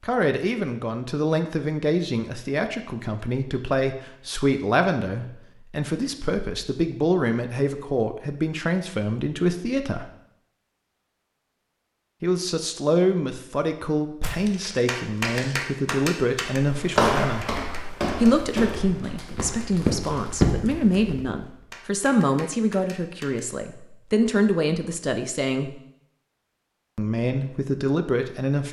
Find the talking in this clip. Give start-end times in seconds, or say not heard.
0.0-10.1, 12.2-17.5, 18.2-25.8, 26.9-28.6.